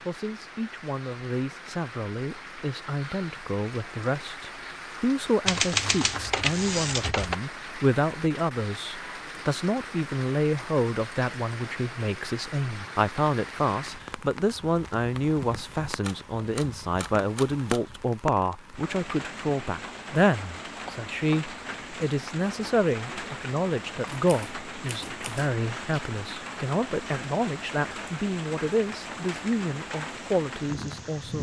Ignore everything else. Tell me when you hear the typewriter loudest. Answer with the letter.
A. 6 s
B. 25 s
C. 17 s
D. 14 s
A.